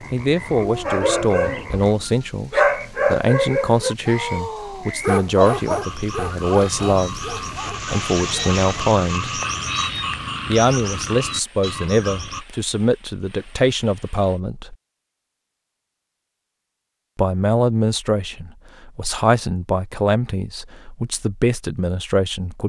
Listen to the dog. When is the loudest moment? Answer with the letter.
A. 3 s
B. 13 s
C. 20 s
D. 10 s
A.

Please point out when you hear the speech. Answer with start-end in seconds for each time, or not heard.
0.1-9.4, 10.4-14.8, 17.1-22.6.